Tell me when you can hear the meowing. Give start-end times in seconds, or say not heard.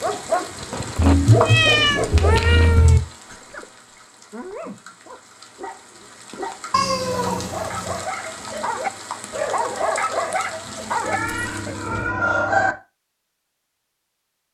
0.9-3.0, 6.7-8.1, 11.0-12.8.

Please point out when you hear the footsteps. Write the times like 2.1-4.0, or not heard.
not heard.